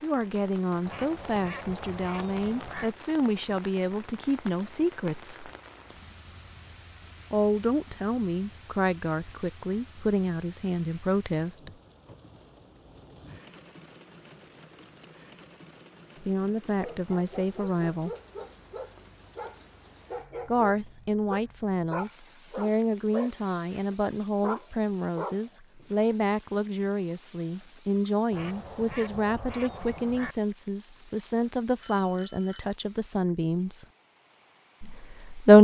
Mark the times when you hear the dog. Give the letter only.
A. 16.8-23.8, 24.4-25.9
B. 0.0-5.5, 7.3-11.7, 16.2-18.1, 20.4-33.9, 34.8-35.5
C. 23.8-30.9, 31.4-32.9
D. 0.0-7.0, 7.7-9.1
A.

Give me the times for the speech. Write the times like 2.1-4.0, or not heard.
0.0-5.5, 7.3-11.7, 16.2-18.1, 20.4-33.9, 34.8-35.5.